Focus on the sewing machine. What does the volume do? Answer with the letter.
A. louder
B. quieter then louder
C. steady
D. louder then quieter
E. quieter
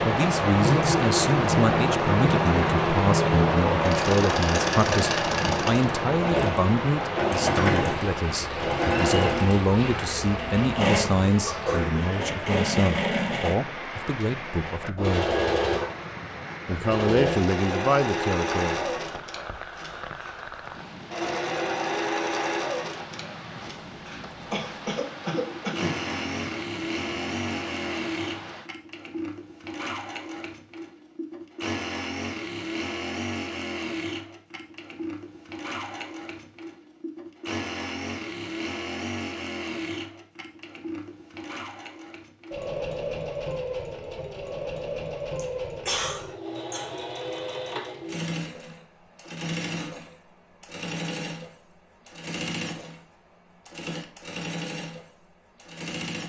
E.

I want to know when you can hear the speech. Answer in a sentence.
The speech can be heard from 0.0 to 15.3 s and from 16.6 to 18.8 s.